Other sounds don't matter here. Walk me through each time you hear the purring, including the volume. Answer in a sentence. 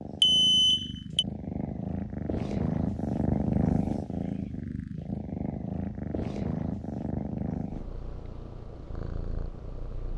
You can hear the purring from 0.0 to 10.1 s, getting louder then quieter.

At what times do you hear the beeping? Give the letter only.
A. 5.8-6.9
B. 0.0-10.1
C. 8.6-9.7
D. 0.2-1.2
D.